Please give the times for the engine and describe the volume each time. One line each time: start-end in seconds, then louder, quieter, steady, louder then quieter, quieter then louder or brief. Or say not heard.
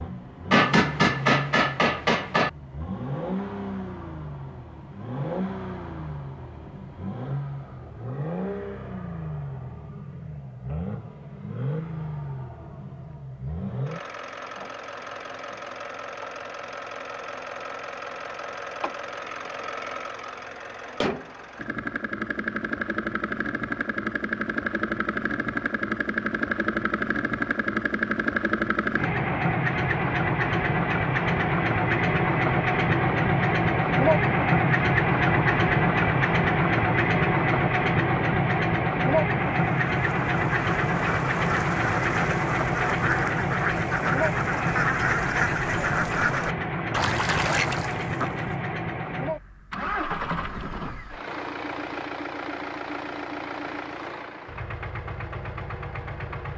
0.0-56.5 louder then quieter.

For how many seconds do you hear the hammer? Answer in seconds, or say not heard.
2 s.